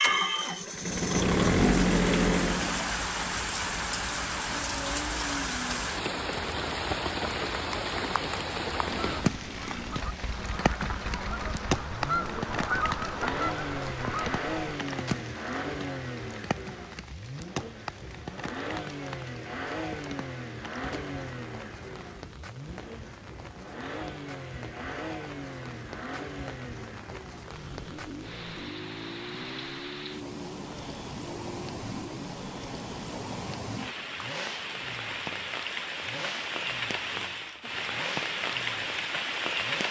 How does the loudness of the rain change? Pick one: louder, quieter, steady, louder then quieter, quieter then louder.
quieter then louder.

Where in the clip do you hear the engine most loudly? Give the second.
2 s.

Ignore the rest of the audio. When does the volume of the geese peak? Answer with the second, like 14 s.
13 s.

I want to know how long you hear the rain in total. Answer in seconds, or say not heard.
40 s.